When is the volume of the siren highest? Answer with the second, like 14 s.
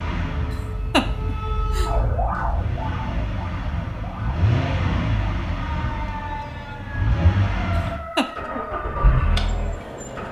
2 s.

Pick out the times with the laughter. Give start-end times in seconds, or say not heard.
0.9-1.9.